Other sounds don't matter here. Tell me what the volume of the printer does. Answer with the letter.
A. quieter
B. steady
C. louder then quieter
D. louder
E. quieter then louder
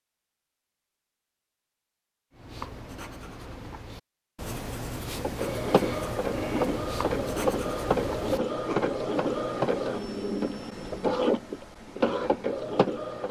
B.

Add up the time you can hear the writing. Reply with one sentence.
You can hear the writing for 7 seconds altogether.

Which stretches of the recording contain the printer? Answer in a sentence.
You can hear the printer from 5.1 to 13.2 s.